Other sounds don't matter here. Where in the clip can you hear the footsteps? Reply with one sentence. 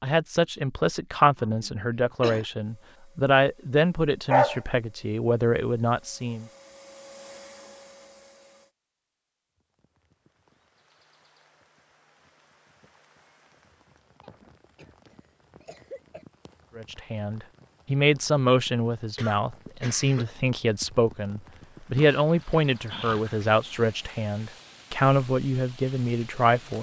The footsteps can't be heard in this clip.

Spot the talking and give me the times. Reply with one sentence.
The talking can be heard from 0.0 to 6.5 s and from 16.8 to 26.7 s.